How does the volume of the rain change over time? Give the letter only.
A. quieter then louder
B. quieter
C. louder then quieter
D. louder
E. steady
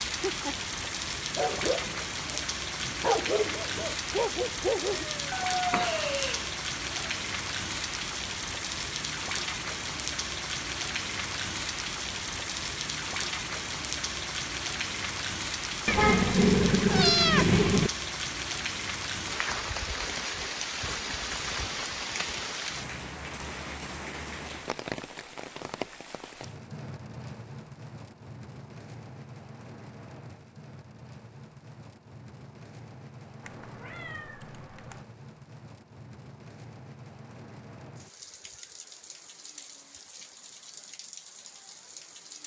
B.